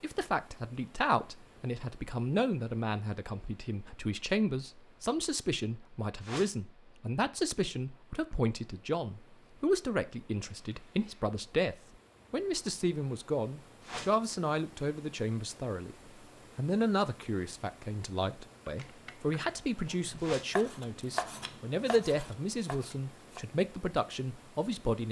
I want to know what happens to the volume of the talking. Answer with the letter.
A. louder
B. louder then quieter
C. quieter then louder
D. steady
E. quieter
D.